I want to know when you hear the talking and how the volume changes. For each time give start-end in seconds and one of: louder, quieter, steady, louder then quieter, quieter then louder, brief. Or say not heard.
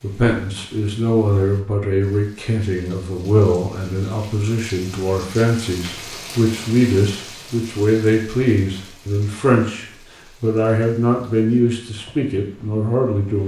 0.0-13.4 steady.